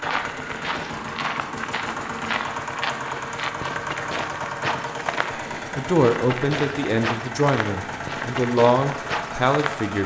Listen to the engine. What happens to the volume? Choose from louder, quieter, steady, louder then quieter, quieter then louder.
steady.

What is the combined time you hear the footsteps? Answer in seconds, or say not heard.
10 s.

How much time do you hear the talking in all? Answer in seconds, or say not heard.
4 s.